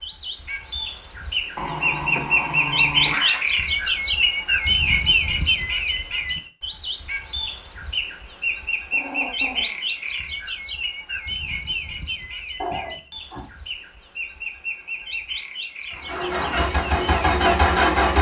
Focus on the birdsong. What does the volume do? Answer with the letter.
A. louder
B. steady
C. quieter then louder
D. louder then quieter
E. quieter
E.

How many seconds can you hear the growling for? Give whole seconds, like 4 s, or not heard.
4 s.